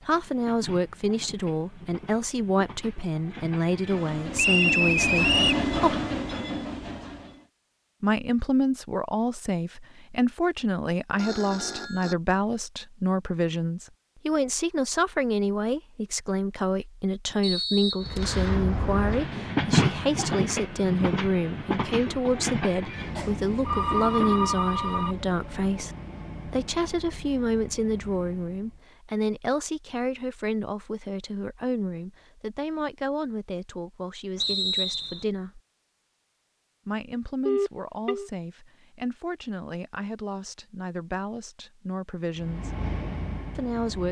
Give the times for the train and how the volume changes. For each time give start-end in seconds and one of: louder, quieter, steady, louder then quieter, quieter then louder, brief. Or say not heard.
0.0-7.5 louder
18.0-28.9 quieter
42.4-44.0 brief.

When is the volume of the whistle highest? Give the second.
5 s.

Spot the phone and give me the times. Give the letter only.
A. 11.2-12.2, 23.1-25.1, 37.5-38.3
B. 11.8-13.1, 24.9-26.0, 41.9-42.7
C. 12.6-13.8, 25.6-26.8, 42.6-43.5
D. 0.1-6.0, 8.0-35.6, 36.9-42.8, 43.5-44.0
A.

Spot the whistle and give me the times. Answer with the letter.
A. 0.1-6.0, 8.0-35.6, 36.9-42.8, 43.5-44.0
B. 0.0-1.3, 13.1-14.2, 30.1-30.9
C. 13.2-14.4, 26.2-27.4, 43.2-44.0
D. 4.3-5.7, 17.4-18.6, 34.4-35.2
D.